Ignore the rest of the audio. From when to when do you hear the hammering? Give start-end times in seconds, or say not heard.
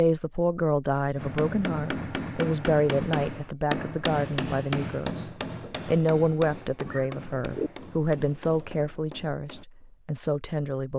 1.1-9.7.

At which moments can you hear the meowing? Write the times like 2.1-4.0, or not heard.
6.8-7.7.